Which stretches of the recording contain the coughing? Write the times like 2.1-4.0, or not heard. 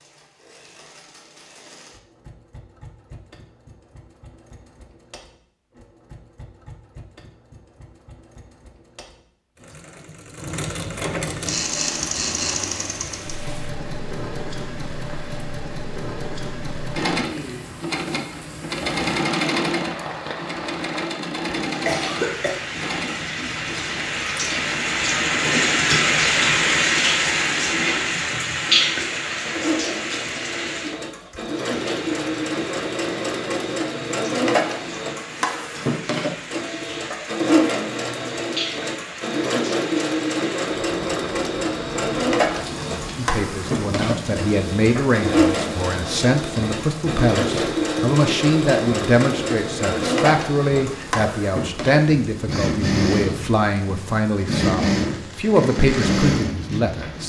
21.9-22.6.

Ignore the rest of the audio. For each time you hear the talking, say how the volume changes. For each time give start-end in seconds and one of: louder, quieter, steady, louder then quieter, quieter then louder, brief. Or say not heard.
43.1-57.2 steady.